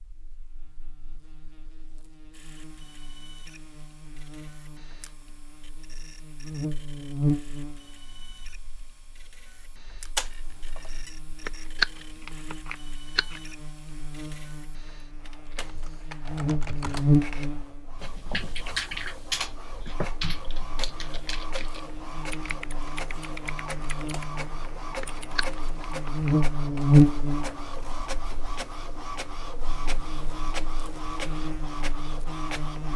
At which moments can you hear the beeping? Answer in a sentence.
You can hear the beeping from 10.2 to 11.1 s.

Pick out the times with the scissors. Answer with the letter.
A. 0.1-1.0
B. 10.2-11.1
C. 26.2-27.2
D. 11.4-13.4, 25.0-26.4
D.